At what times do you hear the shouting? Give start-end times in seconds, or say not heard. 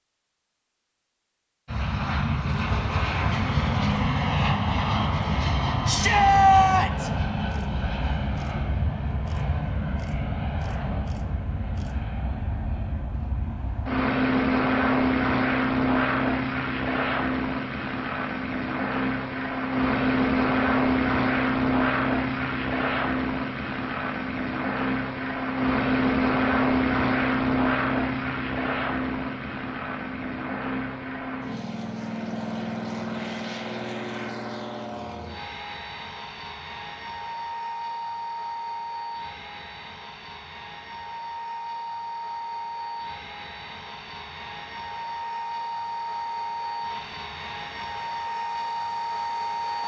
5.8-7.1.